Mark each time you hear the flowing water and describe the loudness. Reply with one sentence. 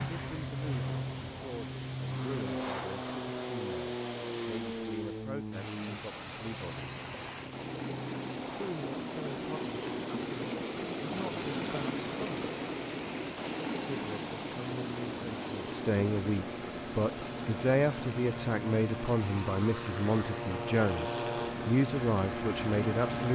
You can hear the flowing water from 0.0 to 23.1 s, getting louder then quieter.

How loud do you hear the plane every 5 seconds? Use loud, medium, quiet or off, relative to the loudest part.
loud, medium, medium, medium, loud.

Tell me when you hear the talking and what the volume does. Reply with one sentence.
You can hear the talking from 0.1 to 6.9 s, at a steady volume; from 8.6 to 12.6 s, getting quieter then louder; and from 13.9 to 23.3 s, getting louder.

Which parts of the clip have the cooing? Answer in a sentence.
The cooing can't be heard in this clip.